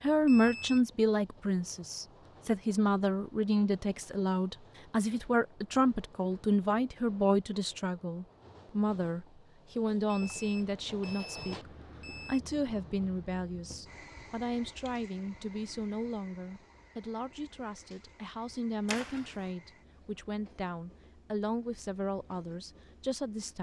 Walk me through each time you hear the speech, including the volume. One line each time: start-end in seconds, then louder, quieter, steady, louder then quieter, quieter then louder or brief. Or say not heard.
0.0-23.5 quieter.